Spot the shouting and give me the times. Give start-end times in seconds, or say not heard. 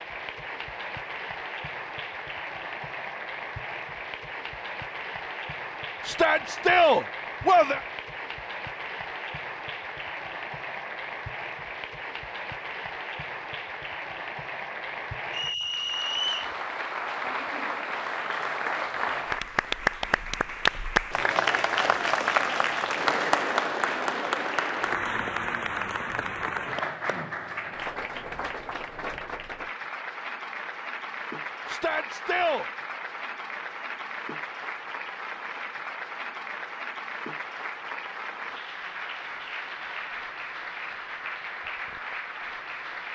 6.0-7.8, 31.6-32.6.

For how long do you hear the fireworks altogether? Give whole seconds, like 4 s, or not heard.
not heard.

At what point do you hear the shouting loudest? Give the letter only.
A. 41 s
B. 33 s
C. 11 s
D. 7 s
D.